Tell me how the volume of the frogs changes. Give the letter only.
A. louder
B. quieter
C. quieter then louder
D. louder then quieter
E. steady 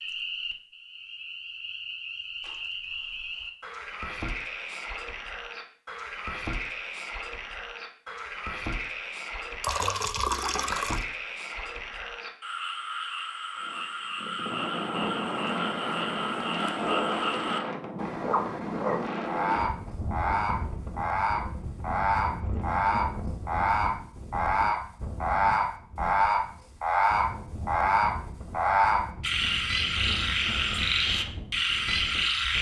A.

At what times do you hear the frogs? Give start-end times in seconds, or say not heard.
0.0-32.5.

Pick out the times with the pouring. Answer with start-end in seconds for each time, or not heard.
9.6-11.1.